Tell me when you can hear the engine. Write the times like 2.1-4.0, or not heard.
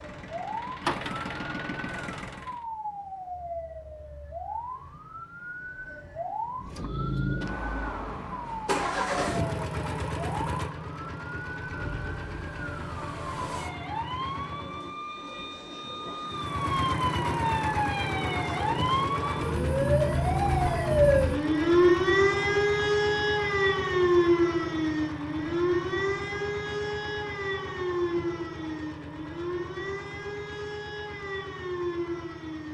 0.0-2.6, 6.5-15.0, 16.2-32.6.